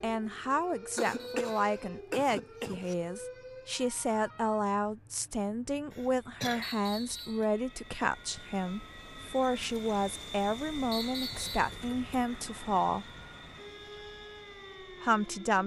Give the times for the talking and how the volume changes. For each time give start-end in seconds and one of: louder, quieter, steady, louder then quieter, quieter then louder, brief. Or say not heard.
0.0-13.1 steady
15.0-15.6 brief.